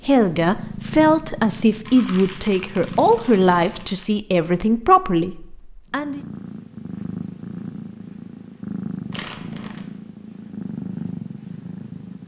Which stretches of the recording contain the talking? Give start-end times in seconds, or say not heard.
0.1-6.2.